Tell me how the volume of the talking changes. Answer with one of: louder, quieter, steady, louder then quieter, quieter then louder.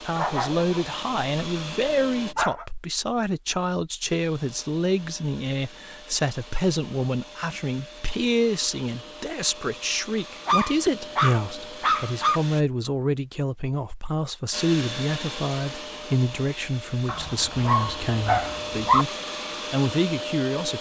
steady.